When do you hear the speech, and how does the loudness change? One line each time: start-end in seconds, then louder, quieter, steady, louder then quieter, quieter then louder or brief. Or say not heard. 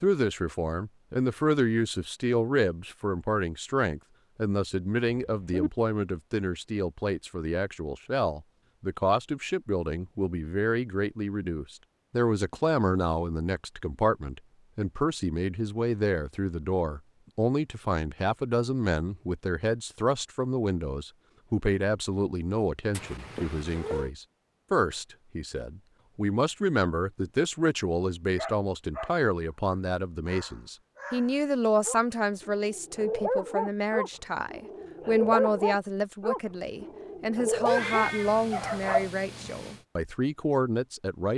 0.0-41.3 steady.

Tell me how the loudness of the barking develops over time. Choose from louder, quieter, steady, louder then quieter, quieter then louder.
louder.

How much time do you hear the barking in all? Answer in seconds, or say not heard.
11 s.